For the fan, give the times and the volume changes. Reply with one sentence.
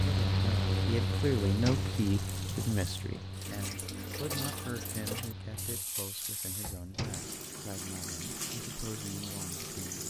The fan can be heard from 0.0 to 5.8 s, getting quieter.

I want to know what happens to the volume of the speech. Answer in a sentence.
The loudness of the speech goes down.